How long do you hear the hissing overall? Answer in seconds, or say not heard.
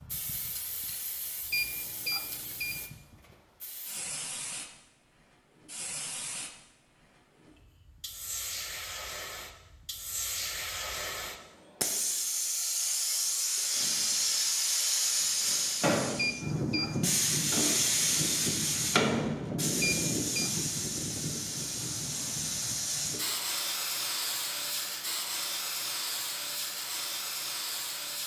28 s.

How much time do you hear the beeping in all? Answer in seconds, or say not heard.
3 s.